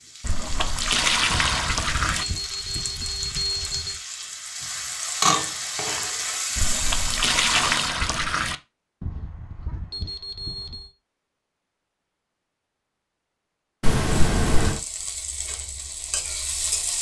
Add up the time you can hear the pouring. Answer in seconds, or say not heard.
5 s.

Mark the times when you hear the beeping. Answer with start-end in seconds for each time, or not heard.
1.3-4.0, 9.0-10.9.